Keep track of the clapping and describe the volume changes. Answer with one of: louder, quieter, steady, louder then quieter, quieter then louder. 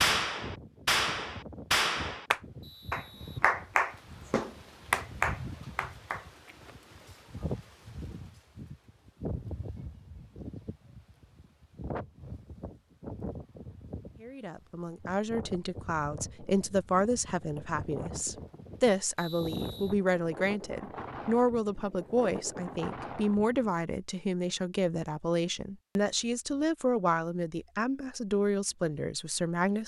steady.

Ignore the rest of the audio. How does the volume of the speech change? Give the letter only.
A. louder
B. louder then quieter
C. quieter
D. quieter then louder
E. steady
E.